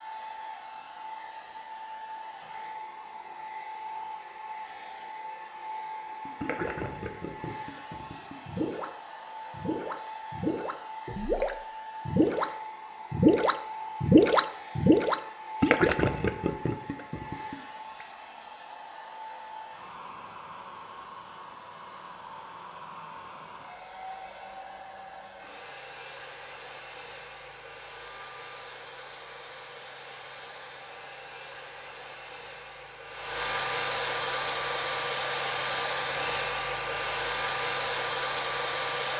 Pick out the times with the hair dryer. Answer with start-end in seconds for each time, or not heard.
0.0-39.1.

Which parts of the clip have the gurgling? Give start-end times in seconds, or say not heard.
6.1-18.1.